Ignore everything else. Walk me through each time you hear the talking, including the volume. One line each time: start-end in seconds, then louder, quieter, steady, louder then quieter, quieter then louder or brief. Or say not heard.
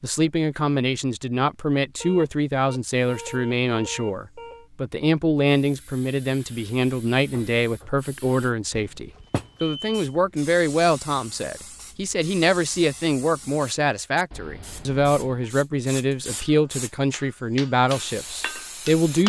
0.0-19.2 steady.